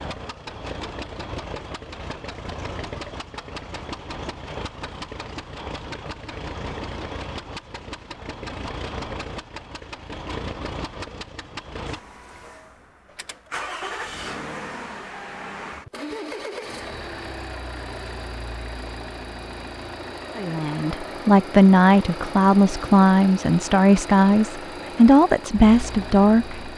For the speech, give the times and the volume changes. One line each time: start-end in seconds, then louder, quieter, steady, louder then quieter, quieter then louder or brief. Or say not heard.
20.4-26.7 steady.